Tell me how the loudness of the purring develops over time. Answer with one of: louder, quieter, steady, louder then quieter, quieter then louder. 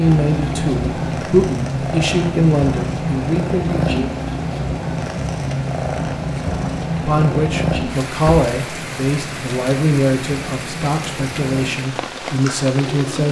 quieter.